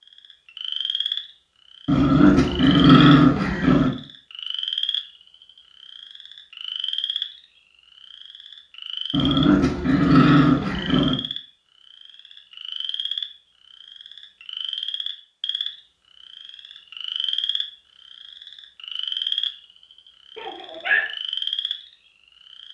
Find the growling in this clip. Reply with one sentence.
You can hear the growling from 1.9 to 3.9 s, from 9.1 to 11.2 s and from 20.4 to 21.0 s.